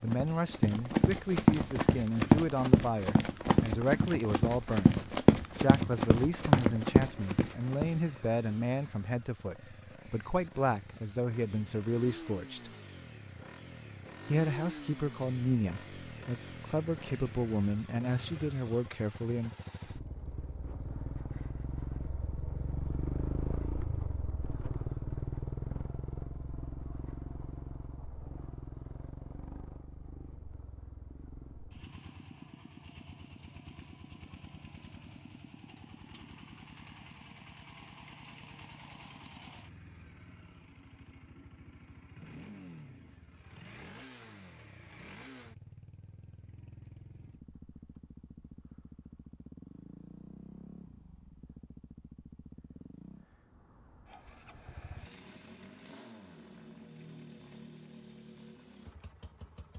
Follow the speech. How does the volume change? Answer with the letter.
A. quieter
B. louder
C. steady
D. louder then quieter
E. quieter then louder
C.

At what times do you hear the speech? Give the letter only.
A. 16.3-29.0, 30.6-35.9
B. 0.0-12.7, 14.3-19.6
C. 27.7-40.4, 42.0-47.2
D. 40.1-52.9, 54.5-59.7
B.